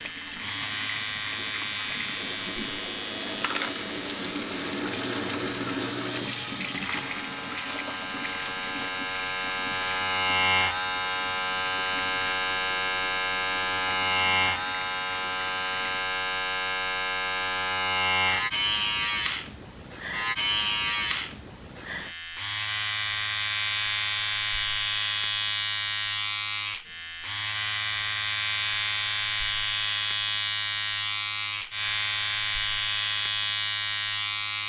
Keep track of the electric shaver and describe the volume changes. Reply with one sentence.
The volume of the electric shaver goes up.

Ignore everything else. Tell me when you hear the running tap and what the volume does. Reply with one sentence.
You can hear the running tap from 0.0 to 16.1 s, getting louder then quieter.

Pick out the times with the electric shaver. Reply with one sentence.
The electric shaver can be heard from 0.0 to 34.6 s.